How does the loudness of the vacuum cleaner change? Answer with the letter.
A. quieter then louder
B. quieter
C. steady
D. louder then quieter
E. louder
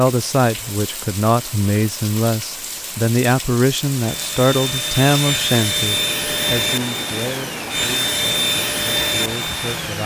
C.